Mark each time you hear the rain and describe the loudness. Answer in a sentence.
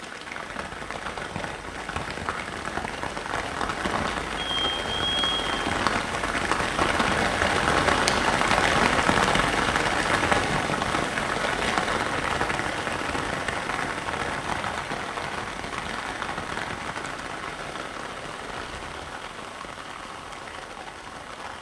You can hear the rain from 0.0 to 21.5 s, getting louder then quieter.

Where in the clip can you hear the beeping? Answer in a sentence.
You can hear the beeping from 4.3 to 5.6 s.